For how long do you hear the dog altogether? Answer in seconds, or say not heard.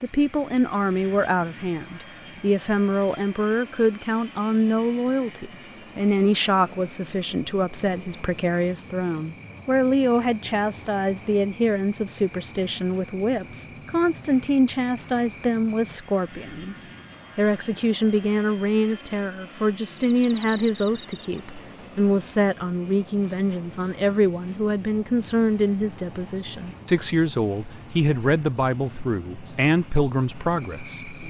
not heard.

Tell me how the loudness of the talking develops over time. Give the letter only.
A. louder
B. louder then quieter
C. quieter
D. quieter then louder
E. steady
E.